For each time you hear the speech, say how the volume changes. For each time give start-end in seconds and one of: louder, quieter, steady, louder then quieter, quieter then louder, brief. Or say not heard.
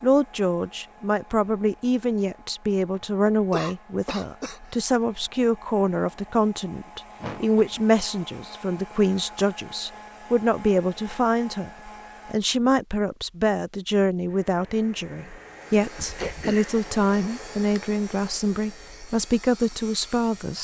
0.0-20.5 steady.